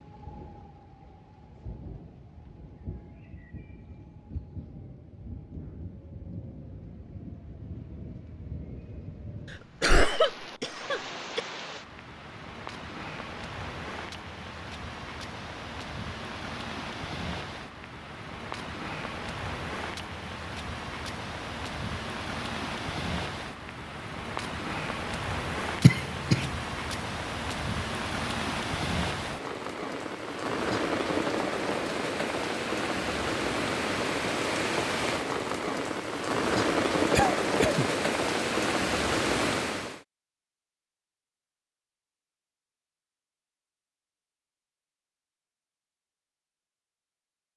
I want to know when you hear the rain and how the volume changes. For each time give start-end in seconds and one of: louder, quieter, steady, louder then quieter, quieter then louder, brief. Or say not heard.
0.0-40.0 louder.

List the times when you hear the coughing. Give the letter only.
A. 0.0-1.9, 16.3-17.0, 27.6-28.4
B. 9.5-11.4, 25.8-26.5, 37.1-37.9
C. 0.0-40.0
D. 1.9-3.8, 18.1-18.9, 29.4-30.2
B.